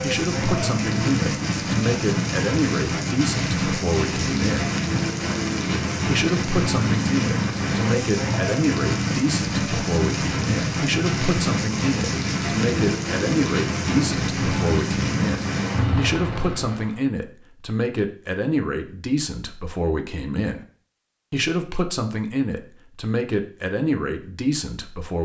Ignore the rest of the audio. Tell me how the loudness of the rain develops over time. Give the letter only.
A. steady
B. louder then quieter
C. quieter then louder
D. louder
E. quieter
A.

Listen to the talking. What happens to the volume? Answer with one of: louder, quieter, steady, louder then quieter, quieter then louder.
steady.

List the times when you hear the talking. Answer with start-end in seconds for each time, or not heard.
0.0-4.7, 6.0-20.6, 21.3-25.2.